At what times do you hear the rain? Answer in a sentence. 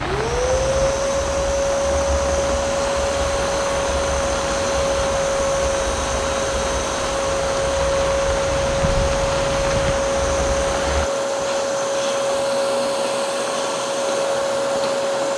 You can hear the rain from 0.0 to 11.1 s.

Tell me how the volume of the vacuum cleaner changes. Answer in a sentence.
The volume of the vacuum cleaner stays about the same.